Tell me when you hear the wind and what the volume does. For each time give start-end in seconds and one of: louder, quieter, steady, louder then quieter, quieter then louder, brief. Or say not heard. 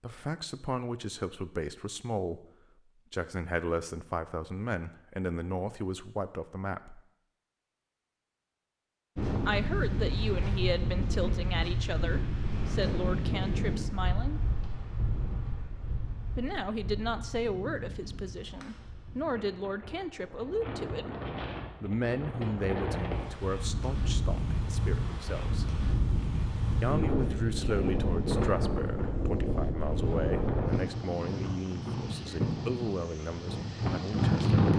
9.2-34.7 quieter then louder.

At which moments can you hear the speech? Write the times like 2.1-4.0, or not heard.
0.0-2.5, 3.1-7.0, 9.4-14.4, 16.4-21.1, 21.8-25.7, 26.8-34.6.